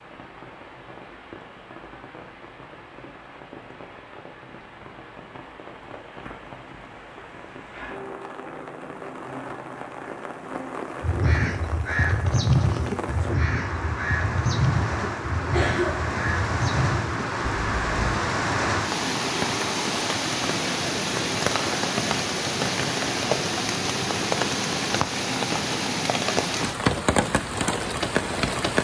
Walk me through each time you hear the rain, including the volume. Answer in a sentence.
The rain can be heard from 0.0 to 28.7 s, getting louder.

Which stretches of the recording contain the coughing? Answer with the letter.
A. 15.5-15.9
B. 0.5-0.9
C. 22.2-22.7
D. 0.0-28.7
A.